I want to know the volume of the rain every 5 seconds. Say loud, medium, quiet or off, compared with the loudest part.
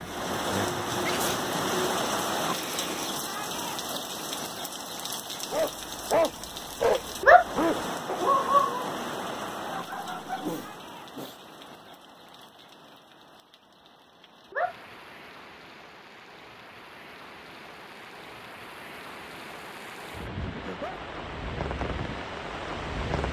loud, loud, quiet, quiet, medium.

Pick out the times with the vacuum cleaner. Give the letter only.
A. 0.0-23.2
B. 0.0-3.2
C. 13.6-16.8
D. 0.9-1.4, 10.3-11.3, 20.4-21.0
B.